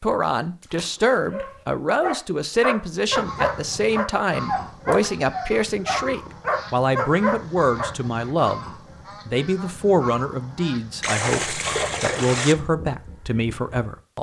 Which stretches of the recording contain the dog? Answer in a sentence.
The dog can be heard from 1.3 to 8.0 s.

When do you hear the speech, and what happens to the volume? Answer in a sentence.
The speech can be heard from 0.0 to 14.1 s, at a steady volume.